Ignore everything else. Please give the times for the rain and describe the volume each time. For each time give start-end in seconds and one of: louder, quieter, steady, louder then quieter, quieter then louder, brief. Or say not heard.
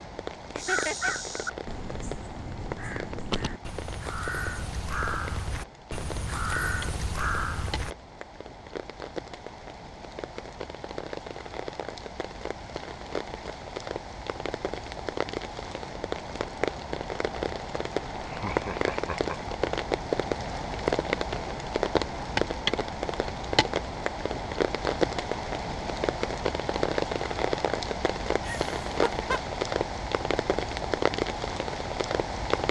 0.0-32.6 louder.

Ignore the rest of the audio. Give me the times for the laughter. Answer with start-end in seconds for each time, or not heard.
0.6-1.1, 18.2-19.6, 28.4-29.4.